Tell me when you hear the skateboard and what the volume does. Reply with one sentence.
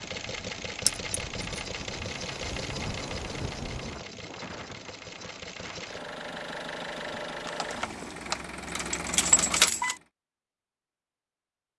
The skateboard can't be heard in this clip.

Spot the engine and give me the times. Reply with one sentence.
You can hear the engine from 0.0 to 10.1 s.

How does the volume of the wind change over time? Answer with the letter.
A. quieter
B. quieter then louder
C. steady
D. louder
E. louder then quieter
E.